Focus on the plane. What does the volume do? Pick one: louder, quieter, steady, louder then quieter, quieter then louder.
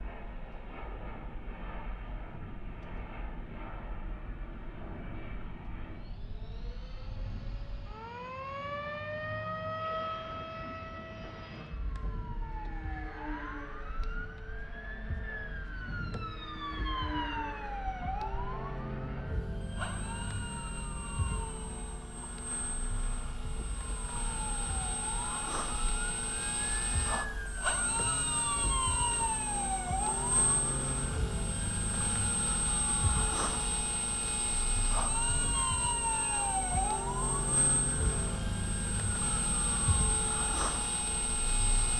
louder.